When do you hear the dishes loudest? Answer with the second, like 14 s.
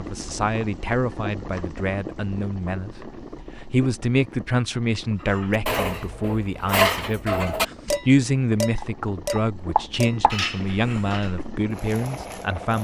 7 s.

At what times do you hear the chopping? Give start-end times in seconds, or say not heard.
8.8-10.3.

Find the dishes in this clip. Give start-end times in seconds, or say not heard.
5.2-11.3.